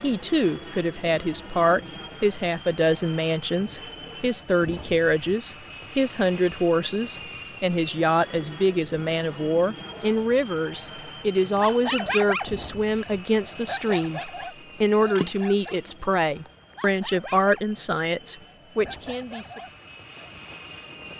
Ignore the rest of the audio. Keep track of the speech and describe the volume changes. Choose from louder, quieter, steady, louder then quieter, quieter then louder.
steady.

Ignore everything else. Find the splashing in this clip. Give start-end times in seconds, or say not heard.
15.1-16.5.